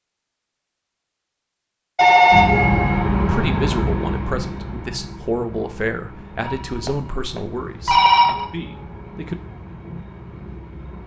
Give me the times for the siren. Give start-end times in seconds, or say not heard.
not heard.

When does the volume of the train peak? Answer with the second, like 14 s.
3 s.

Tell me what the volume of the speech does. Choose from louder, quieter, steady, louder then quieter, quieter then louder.
quieter.